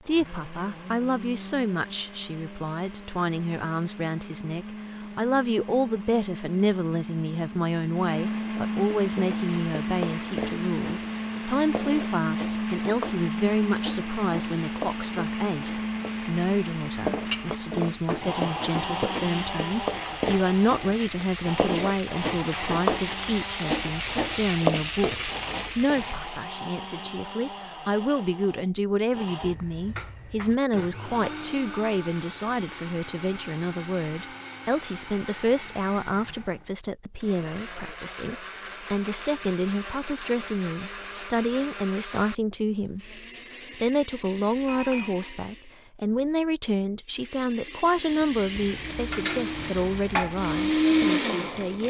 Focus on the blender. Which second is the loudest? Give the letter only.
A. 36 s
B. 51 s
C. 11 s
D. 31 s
B.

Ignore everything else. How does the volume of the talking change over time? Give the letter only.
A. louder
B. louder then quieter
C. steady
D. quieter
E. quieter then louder
C.